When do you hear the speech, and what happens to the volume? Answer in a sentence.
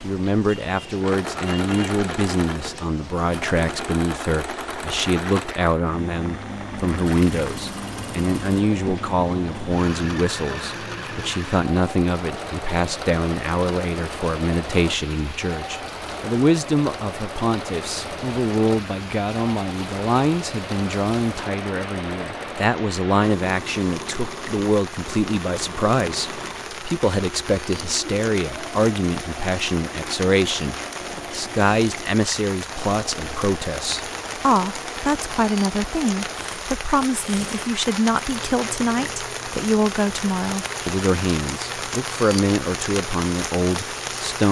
You can hear the speech from 0.0 to 44.4 s, at a steady volume.